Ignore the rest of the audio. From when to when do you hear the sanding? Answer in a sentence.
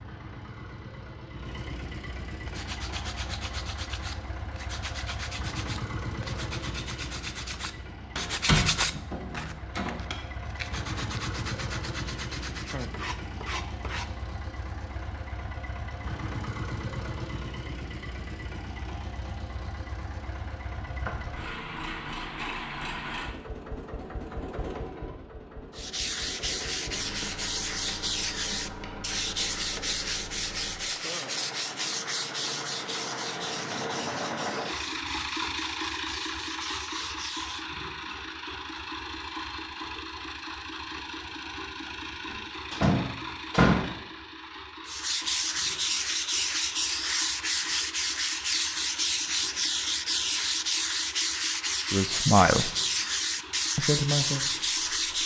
The sanding can be heard from 2.5 to 14.1 s, from 25.8 to 37.6 s and from 44.9 to 55.2 s.